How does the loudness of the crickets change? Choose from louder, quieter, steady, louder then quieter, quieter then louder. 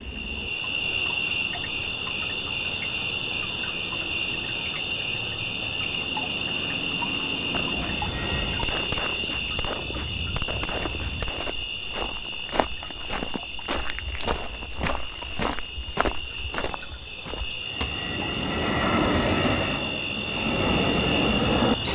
quieter then louder.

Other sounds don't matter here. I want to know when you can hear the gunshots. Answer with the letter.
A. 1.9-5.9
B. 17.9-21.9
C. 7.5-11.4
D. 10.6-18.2
C.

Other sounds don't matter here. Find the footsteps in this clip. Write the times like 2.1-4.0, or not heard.
10.6-18.2.